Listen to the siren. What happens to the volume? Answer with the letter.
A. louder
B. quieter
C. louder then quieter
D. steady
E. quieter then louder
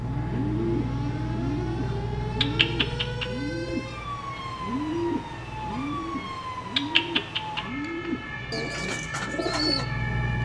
D.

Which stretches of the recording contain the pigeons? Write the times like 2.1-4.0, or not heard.
0.2-9.8.